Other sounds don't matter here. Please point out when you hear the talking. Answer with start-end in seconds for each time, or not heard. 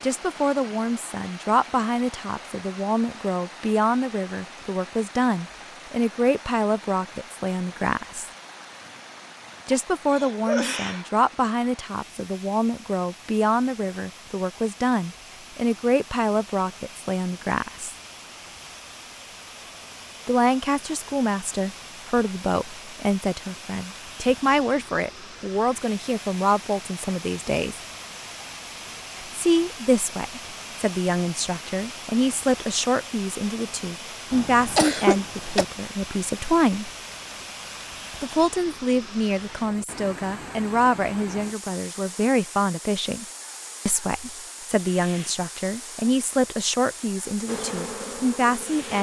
0.0-8.3, 9.7-17.9, 20.2-27.8, 29.4-36.9, 38.2-43.2, 43.9-48.9.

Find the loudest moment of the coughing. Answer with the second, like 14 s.
35 s.